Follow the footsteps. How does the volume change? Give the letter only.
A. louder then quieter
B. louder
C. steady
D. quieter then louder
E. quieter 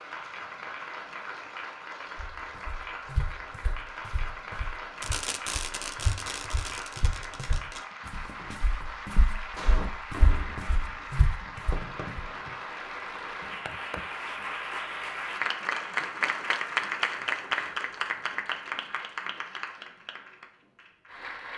D.